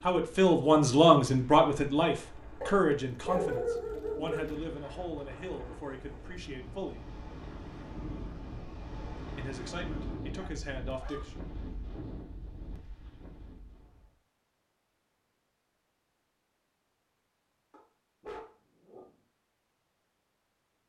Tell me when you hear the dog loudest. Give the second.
3 s.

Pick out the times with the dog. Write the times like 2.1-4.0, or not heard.
2.6-4.6, 10.3-11.4, 17.7-19.1.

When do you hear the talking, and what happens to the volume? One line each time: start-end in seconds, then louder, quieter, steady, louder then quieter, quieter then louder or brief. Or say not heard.
0.0-7.3 quieter
8.9-11.4 brief.